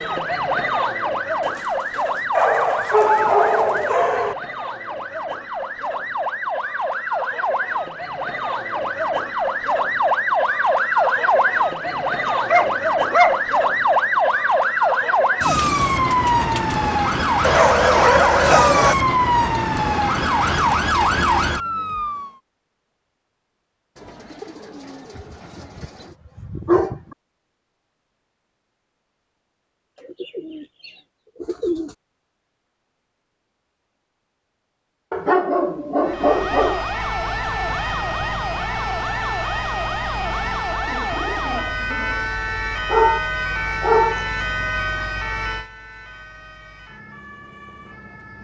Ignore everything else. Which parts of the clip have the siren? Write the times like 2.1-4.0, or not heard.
0.0-22.3, 36.0-48.3.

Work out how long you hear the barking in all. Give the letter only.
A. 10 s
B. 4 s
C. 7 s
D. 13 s
A.